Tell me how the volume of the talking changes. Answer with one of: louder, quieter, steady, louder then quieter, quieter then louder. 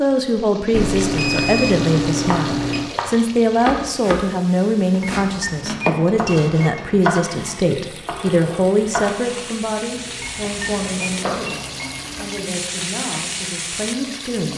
quieter.